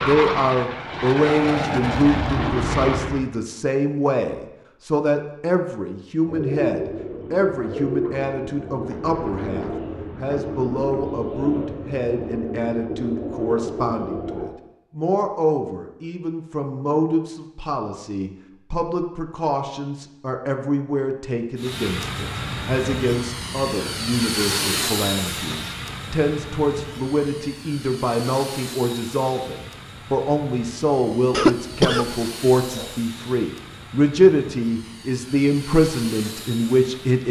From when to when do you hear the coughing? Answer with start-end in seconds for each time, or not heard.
31.3-33.0.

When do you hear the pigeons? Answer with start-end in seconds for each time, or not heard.
6.2-14.5.